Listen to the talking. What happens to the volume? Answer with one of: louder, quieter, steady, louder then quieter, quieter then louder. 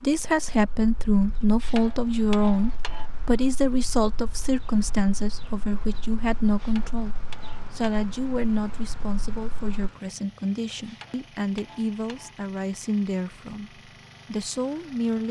quieter.